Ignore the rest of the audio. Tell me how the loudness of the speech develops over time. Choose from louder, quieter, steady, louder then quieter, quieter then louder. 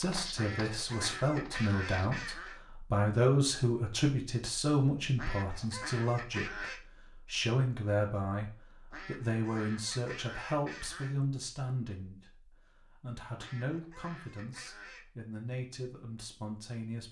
quieter.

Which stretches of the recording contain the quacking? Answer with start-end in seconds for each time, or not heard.
0.3-2.6, 5.2-6.8, 8.9-11.2, 13.3-15.1.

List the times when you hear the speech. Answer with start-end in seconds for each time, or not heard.
0.0-12.3, 13.0-17.0.